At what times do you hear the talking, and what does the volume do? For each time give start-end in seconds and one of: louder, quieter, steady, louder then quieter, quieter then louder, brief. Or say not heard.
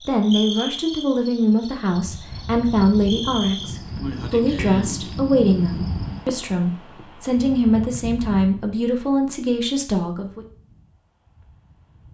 0.1-10.4 steady.